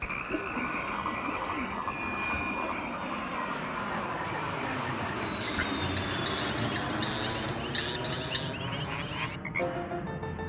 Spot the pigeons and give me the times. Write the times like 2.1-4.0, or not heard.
0.2-2.8, 5.8-7.6.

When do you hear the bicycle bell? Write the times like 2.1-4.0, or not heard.
1.9-2.8, 5.5-7.5.